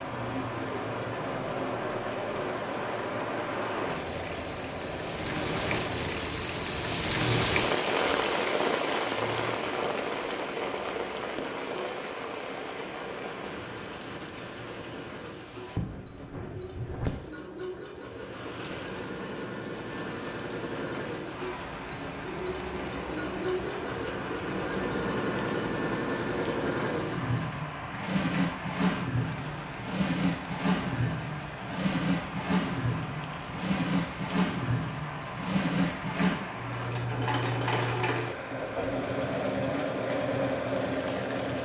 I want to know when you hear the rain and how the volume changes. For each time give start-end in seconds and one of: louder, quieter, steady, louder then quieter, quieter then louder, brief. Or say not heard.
0.0-41.6 quieter.